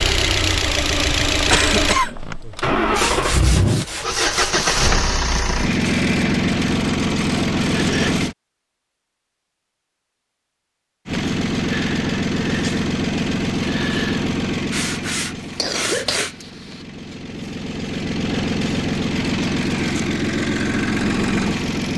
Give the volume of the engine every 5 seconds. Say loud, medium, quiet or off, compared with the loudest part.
loud, loud, loud, medium, loud.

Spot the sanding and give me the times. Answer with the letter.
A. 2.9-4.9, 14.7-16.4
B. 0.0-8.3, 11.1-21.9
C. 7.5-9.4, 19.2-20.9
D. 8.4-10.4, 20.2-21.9
A.